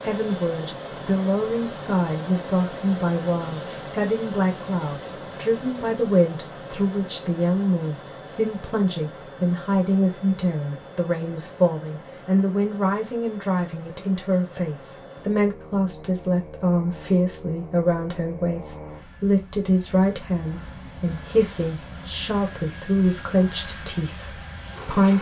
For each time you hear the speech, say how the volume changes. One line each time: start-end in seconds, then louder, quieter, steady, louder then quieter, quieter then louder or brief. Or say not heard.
0.0-25.1 steady.